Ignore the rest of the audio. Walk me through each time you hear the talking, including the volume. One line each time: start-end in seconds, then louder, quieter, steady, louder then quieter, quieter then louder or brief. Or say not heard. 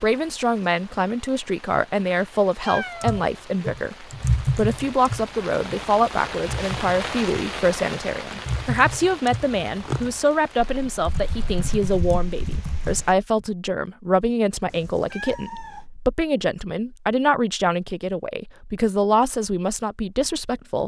0.0-20.8 steady.